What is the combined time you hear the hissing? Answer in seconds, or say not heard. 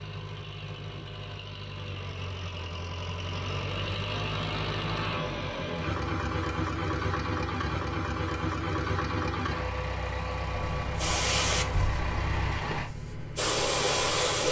4 s.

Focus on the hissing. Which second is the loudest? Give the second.
14 s.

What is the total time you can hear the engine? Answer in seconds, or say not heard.
13 s.